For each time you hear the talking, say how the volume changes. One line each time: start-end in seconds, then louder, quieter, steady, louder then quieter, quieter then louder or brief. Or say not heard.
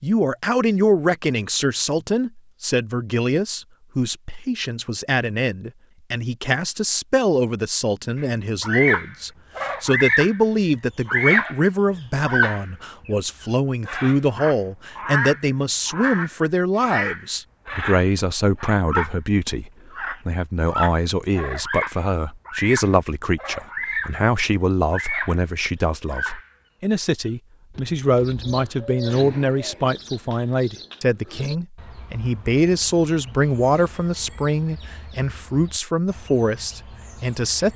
0.0-37.7 steady.